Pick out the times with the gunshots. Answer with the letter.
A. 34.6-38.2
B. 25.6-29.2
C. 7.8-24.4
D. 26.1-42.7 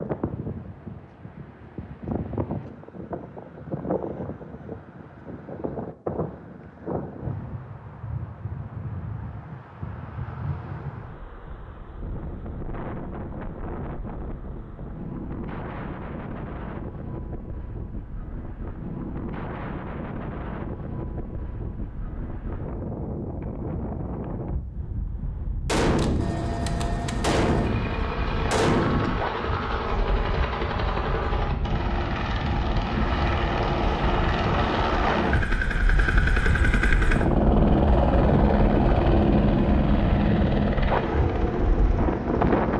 B.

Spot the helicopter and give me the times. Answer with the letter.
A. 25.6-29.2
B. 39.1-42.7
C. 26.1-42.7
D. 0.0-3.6
C.